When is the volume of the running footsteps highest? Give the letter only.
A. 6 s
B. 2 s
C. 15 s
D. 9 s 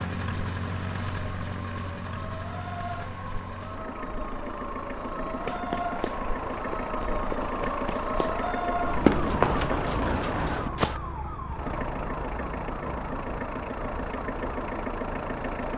D.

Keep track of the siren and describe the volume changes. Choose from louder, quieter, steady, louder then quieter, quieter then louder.
louder then quieter.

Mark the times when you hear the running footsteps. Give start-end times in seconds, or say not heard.
5.5-11.0.